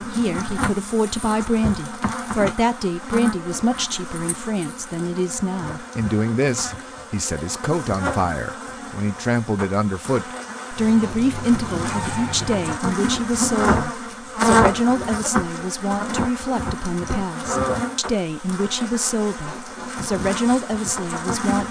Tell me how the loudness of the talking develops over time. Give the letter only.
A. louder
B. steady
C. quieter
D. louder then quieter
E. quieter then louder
B.